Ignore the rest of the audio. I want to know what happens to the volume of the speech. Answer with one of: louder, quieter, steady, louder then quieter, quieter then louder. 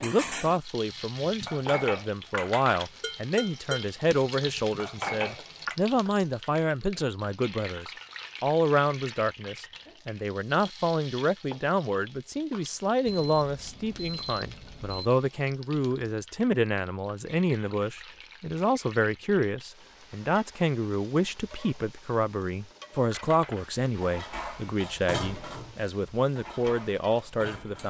steady.